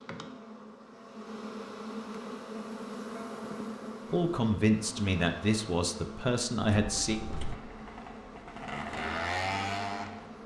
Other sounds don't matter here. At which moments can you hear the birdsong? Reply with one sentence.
The birdsong can't be heard in this clip.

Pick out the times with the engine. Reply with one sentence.
The engine can be heard from 6.7 to 10.4 s.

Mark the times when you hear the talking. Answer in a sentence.
The talking can be heard from 4.1 to 7.2 s.